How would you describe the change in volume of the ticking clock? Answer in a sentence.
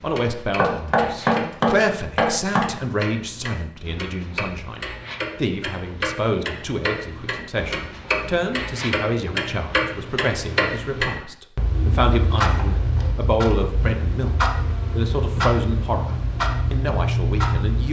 The volume of the ticking clock goes up.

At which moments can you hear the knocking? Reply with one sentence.
You can hear the knocking from 0.6 to 2.6 s.